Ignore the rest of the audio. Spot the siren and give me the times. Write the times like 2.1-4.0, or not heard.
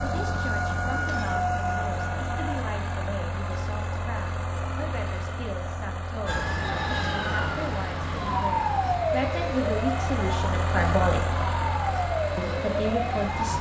0.0-2.5, 6.2-13.5.